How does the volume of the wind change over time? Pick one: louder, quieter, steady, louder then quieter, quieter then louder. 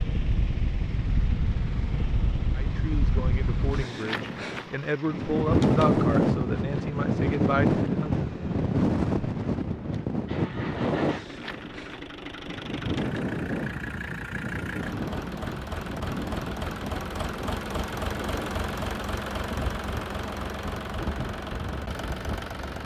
louder then quieter.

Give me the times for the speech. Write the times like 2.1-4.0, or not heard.
2.5-8.2.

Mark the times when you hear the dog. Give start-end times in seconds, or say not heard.
not heard.